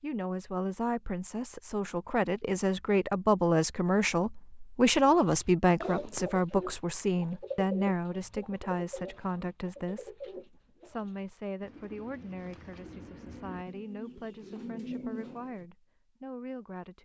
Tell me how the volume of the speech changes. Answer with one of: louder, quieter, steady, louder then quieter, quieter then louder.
quieter.